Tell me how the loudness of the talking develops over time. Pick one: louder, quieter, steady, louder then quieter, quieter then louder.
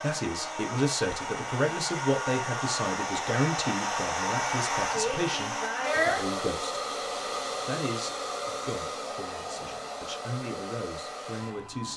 quieter.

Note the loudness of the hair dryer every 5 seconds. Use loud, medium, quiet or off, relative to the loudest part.
loud, loud, medium.